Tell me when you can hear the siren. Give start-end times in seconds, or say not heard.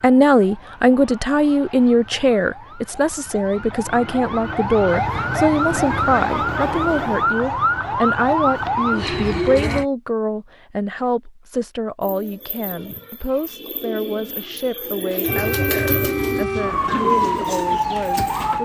0.0-9.8, 15.2-18.6.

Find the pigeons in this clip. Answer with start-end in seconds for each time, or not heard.
12.0-18.2.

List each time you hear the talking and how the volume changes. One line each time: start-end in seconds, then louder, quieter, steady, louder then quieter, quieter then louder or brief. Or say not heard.
0.0-18.6 quieter.